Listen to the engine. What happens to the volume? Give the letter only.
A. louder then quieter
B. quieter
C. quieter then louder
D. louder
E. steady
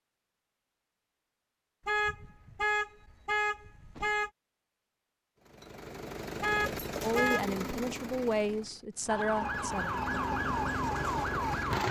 C.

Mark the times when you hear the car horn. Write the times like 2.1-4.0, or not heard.
1.9-4.3, 6.4-7.5.